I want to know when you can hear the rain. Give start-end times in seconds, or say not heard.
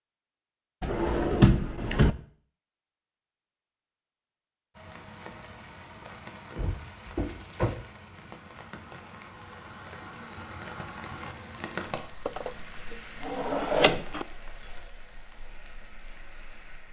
4.8-16.8.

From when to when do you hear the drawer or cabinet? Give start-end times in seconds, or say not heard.
0.8-2.1, 6.5-7.8, 12.2-14.2.